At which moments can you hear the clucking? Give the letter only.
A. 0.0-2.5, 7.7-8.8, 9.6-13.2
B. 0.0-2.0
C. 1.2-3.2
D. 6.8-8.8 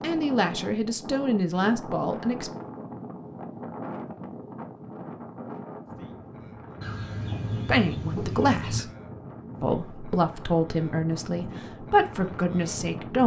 D.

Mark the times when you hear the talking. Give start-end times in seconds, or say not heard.
0.0-2.5, 7.7-8.8, 9.6-13.2.